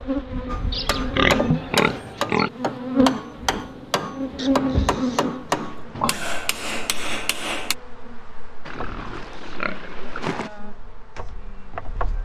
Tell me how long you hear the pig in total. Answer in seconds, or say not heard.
6 s.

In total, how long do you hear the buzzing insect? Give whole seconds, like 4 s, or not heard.
12 s.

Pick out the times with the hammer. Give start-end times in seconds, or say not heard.
0.5-7.8.